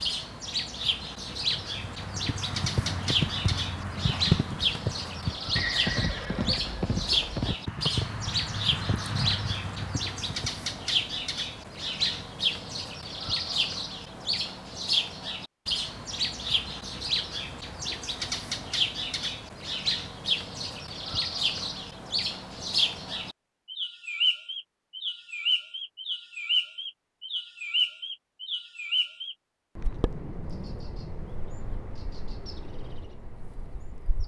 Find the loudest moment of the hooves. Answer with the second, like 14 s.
4 s.